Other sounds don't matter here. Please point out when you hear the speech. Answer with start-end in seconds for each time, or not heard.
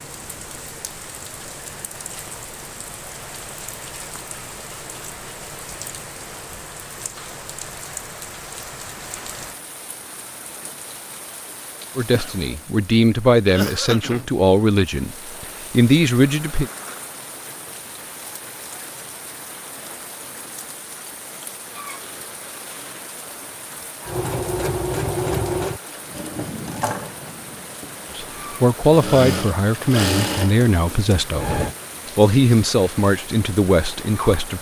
11.9-16.7, 28.1-34.5.